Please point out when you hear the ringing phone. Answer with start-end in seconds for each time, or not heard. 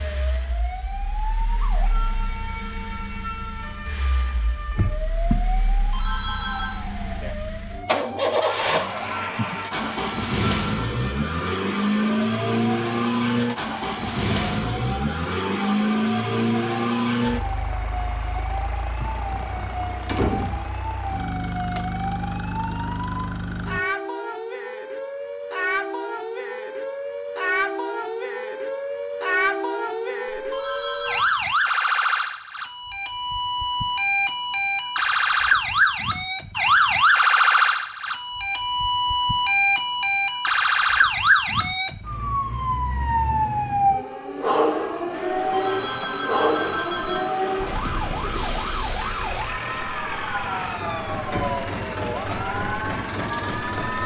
5.8-6.8, 30.4-31.4, 45.5-47.3.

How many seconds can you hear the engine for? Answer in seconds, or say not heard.
33 s.